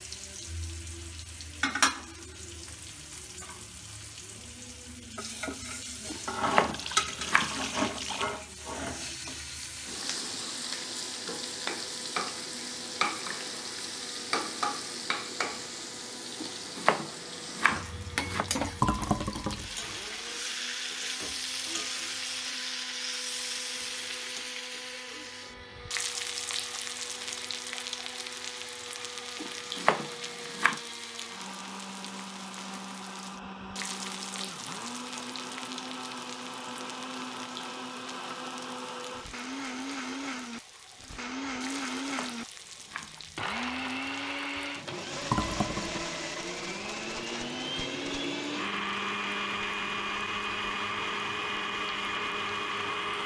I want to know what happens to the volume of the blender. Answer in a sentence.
The volume of the blender goes up.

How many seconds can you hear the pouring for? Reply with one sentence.
You can hear the pouring for 4 seconds altogether.